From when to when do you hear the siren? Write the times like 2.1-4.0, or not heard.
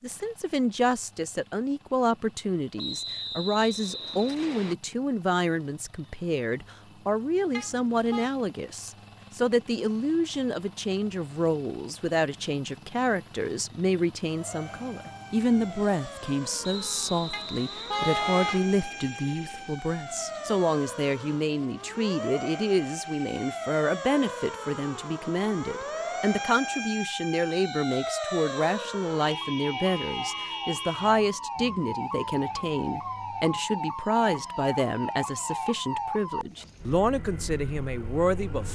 14.2-38.6.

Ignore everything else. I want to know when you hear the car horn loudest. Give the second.
18 s.